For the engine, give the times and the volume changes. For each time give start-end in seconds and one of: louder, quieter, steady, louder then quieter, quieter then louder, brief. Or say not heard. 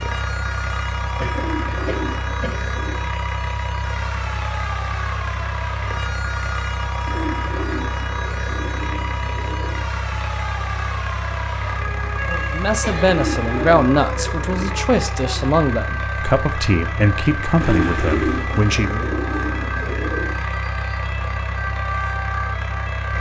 0.0-23.1 steady.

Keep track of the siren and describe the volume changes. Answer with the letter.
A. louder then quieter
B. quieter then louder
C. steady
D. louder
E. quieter
C.